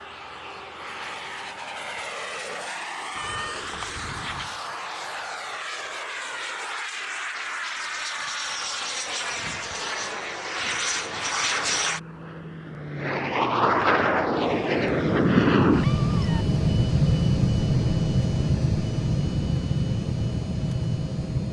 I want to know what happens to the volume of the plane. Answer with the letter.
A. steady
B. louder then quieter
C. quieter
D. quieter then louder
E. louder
E.